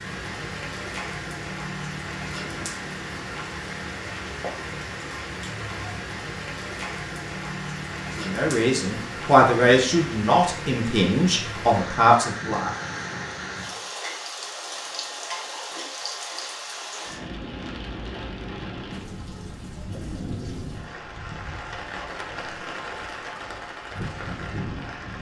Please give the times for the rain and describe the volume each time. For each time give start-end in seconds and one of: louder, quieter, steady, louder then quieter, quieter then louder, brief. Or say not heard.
0.0-25.1 steady.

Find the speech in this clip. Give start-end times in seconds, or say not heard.
8.2-12.7.